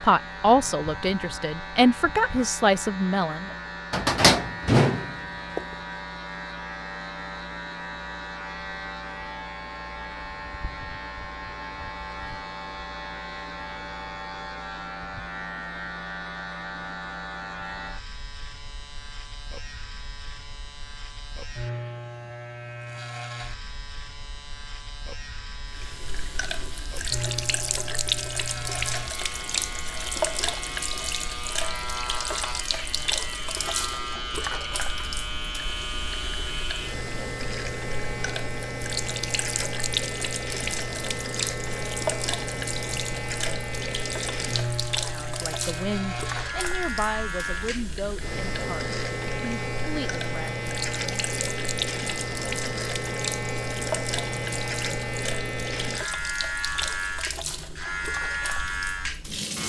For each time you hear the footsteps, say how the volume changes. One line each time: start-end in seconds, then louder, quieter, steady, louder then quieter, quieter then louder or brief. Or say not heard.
not heard.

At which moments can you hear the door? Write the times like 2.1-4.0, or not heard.
3.9-5.7.